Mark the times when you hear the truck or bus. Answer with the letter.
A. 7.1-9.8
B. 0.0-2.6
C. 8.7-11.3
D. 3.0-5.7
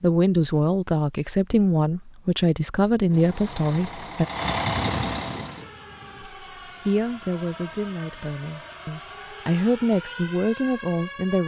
D.